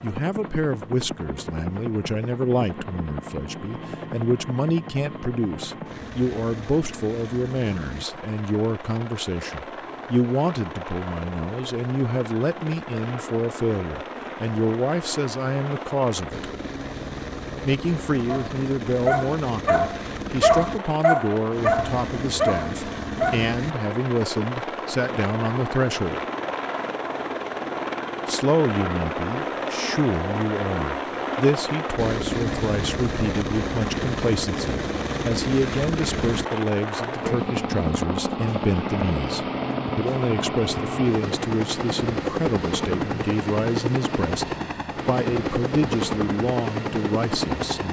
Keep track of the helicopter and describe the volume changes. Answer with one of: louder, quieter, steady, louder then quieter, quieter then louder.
louder.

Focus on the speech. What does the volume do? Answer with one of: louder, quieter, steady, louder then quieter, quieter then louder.
steady.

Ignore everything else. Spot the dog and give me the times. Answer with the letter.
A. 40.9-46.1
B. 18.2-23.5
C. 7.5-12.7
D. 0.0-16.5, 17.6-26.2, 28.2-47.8
B.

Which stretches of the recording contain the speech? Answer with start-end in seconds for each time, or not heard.
0.0-16.5, 17.6-26.2, 28.2-47.8.